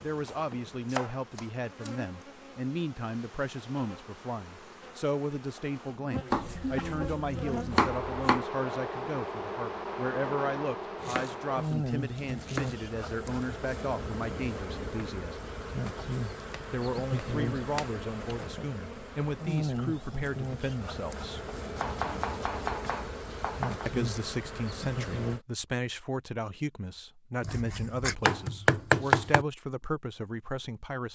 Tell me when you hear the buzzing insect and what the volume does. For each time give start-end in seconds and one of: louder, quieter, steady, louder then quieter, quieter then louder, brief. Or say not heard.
0.0-25.4 louder.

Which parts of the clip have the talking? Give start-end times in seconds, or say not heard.
0.0-15.4, 16.7-21.4, 23.9-31.1.